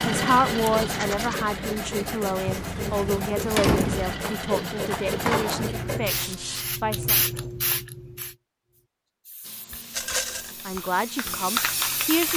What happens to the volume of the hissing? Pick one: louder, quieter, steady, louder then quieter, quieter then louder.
quieter then louder.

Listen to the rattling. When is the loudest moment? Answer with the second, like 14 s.
10 s.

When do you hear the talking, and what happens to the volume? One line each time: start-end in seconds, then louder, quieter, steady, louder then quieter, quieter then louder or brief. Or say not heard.
0.0-7.2 quieter
10.7-12.3 brief.